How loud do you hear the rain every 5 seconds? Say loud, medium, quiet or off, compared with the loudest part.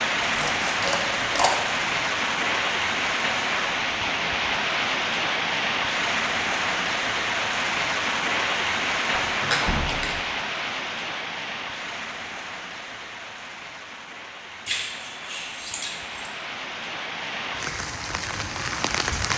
loud, loud, medium, medium.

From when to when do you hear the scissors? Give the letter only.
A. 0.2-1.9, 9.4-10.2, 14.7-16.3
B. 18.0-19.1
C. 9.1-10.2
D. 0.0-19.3
A.